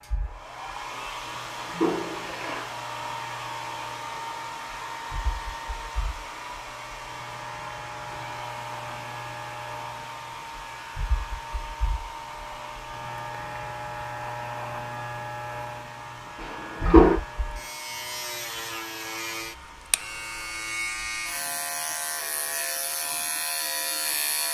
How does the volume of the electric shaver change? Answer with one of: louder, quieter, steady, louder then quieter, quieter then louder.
louder.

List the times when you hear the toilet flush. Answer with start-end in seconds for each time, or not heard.
1.2-2.6, 16.4-17.2.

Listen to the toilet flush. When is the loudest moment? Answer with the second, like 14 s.
17 s.